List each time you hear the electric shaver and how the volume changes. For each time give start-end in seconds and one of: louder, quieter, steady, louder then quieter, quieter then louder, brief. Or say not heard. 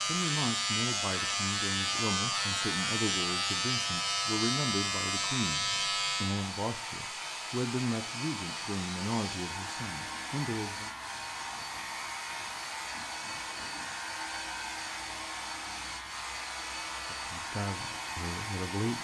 0.0-19.0 quieter.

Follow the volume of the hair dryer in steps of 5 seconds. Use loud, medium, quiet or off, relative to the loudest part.
medium, loud, loud, loud.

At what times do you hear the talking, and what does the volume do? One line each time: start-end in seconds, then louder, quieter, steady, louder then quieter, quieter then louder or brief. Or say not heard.
0.0-10.9 steady
17.1-19.0 brief.